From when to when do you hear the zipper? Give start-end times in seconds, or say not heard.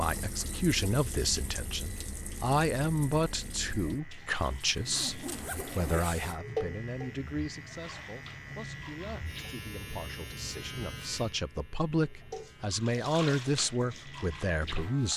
4.5-6.4.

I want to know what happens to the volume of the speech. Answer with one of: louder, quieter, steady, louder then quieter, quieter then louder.
quieter then louder.